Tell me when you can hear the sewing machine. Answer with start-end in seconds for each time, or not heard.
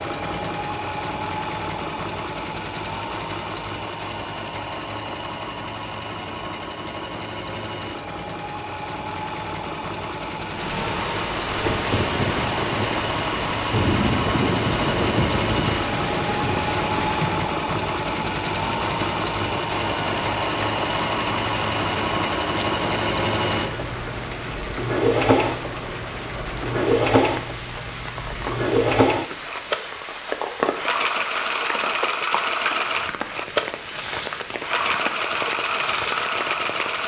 0.0-37.0.